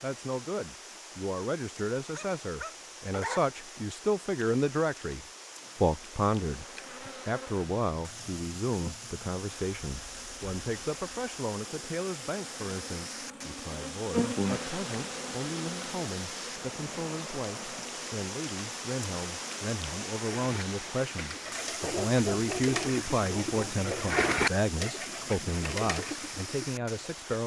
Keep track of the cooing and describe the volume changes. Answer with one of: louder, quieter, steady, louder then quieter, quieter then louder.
louder then quieter.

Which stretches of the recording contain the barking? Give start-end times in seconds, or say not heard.
2.1-3.4, 21.8-24.1.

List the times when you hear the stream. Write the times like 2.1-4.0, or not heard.
0.0-27.4.